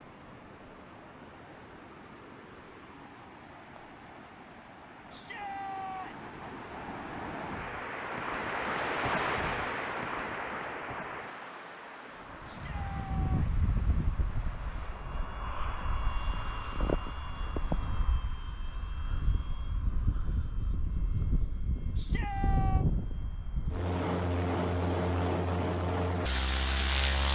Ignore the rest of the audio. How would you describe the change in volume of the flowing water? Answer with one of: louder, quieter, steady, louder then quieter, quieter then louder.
louder then quieter.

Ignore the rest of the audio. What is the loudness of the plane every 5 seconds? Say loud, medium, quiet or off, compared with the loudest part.
off, off, medium, medium, loud, loud.